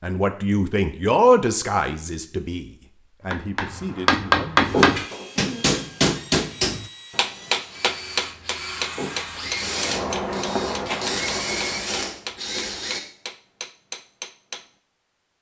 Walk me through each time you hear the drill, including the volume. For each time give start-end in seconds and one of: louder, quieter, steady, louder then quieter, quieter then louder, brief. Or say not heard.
4.6-13.0 louder.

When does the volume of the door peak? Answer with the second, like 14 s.
5 s.